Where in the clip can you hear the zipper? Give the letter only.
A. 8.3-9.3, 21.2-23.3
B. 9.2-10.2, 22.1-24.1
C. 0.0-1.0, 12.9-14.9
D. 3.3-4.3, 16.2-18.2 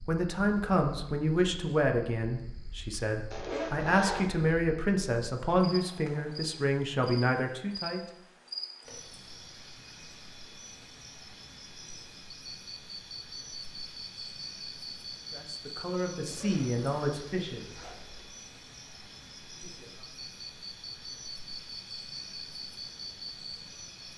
D.